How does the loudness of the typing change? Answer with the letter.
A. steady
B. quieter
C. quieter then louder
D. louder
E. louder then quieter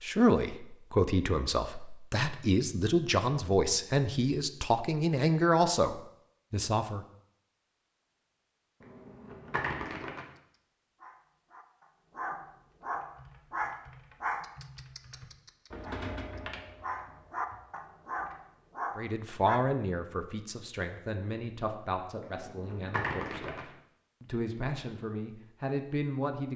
E.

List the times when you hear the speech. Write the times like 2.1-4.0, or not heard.
0.0-7.0, 18.9-26.5.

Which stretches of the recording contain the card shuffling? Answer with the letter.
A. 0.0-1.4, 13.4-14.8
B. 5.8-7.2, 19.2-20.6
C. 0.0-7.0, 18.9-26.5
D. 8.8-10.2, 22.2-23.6
D.